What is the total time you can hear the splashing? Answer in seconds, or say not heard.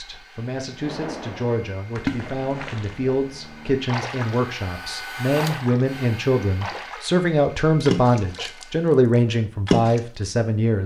7 s.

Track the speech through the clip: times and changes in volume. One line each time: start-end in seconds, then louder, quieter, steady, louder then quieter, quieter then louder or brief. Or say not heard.
0.0-10.8 louder.